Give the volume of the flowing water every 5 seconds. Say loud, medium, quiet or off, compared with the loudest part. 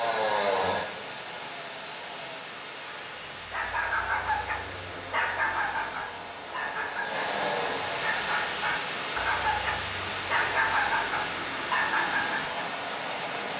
medium, loud, loud.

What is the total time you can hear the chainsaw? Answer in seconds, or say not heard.
6 s.